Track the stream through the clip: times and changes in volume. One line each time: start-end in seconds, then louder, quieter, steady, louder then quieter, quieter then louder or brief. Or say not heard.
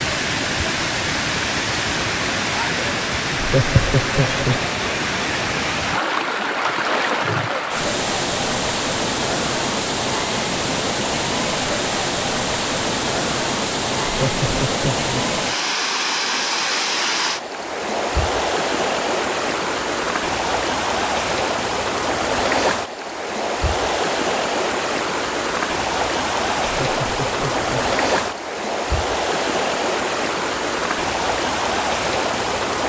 0.0-32.8 steady.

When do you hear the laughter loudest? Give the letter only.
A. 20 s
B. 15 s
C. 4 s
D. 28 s
C.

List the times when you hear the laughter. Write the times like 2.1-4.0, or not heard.
3.3-4.7, 14.0-15.2, 26.6-27.9.